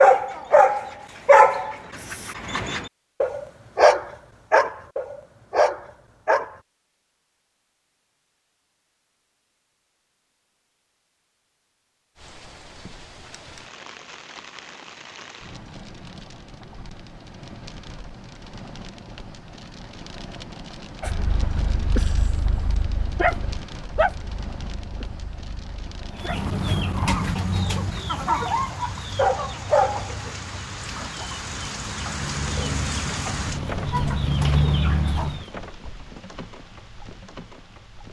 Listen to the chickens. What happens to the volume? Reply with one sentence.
The volume of the chickens goes down, then up.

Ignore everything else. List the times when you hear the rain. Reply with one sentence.
The rain can be heard from 12.2 to 38.0 s.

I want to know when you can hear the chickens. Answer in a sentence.
You can hear the chickens from 26.1 to 35.5 s.